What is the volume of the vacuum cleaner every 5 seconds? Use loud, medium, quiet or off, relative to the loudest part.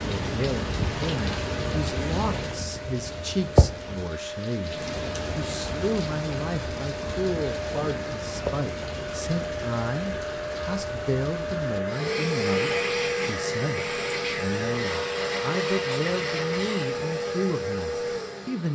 medium, medium, loud, loud.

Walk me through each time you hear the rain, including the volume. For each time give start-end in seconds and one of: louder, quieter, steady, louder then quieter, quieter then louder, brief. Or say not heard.
0.0-11.8 quieter.